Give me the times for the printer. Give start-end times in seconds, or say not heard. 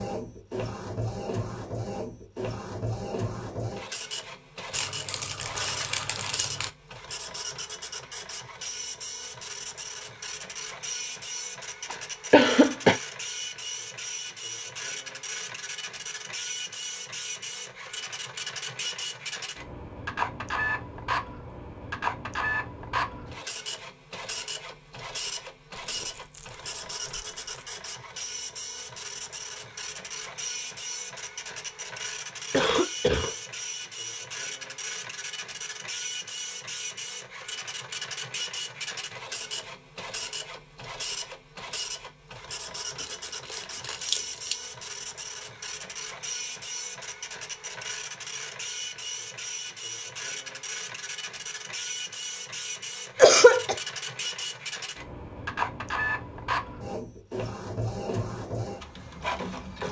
0.0-59.8.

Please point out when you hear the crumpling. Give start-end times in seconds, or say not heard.
4.7-6.7, 25.8-27.7, 43.0-44.5.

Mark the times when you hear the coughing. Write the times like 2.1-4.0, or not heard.
11.9-13.0, 32.5-33.3, 53.1-53.8.